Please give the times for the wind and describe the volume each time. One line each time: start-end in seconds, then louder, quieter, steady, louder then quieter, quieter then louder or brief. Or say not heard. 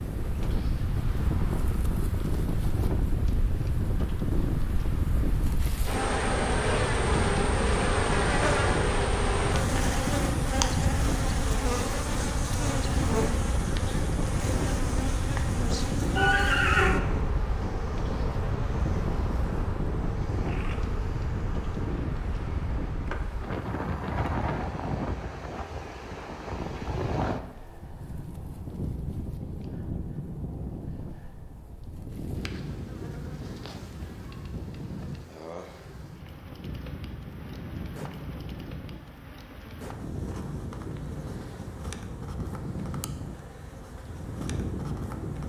0.0-45.4 quieter.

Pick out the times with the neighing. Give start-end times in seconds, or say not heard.
16.1-16.9.